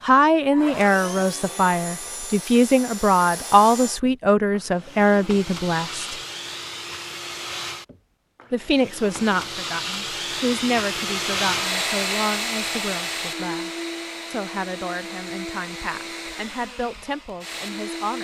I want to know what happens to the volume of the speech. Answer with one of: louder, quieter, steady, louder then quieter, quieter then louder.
quieter.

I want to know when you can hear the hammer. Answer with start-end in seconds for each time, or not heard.
not heard.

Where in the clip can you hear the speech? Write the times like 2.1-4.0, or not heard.
0.0-6.2, 8.5-13.7, 14.3-18.1.